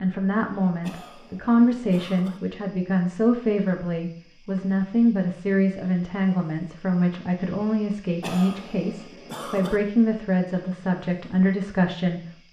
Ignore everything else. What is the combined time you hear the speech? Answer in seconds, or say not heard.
12 s.